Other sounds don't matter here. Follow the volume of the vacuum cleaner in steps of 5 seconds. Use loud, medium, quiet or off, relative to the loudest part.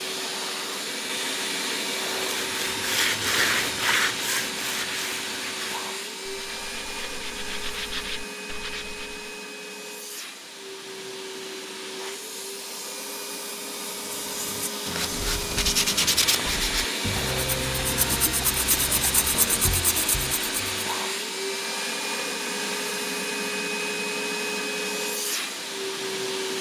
loud, medium, medium, loud, loud, loud.